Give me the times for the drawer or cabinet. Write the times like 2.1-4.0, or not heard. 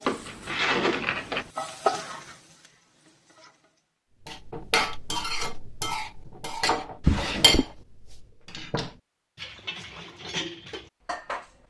0.1-1.5, 7.0-7.7.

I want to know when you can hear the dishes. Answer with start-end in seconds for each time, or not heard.
4.2-11.6.